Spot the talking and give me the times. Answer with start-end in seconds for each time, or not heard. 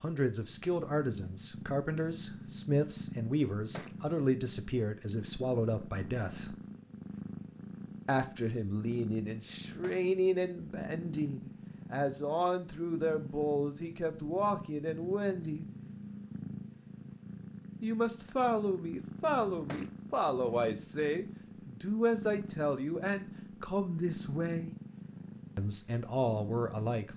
0.0-6.5, 8.1-15.7, 17.8-24.8, 25.6-27.1.